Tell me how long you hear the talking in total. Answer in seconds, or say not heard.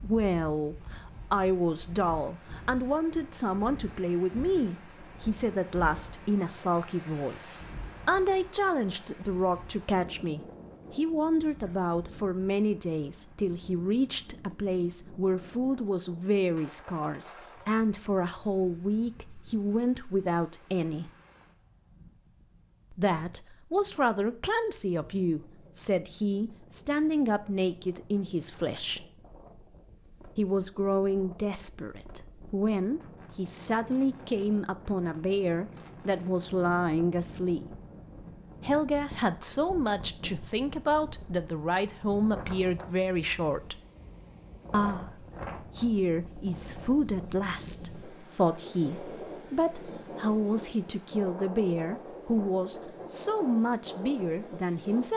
50 s.